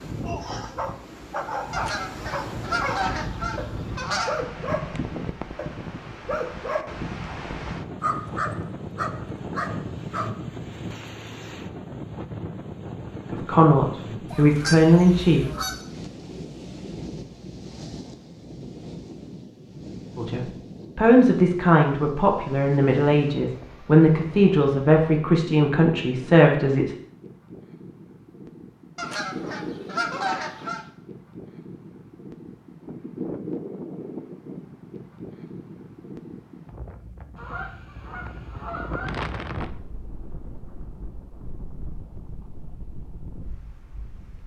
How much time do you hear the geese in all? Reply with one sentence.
You can hear the geese for 8 seconds altogether.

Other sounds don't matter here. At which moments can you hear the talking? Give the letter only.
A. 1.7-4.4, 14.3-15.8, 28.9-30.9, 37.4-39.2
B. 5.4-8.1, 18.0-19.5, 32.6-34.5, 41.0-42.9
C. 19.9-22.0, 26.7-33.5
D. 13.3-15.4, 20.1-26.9
D.